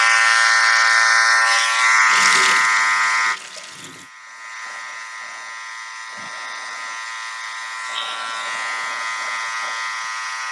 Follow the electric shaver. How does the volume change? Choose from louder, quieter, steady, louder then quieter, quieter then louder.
quieter then louder.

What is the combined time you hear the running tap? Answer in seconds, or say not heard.
2 s.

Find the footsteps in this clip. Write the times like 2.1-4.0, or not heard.
not heard.